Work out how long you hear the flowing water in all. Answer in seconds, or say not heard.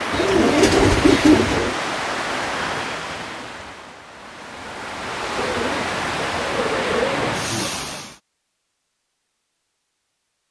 8 s.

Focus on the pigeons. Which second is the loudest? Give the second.
1 s.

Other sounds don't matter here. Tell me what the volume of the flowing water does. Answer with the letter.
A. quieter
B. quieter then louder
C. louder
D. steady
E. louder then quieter
B.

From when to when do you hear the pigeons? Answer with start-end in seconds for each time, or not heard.
0.1-1.8, 5.3-7.7.